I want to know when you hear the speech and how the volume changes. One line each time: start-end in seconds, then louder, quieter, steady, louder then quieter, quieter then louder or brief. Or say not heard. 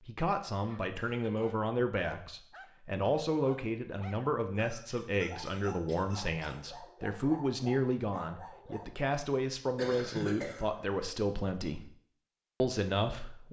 0.0-11.9 steady
12.6-13.4 brief.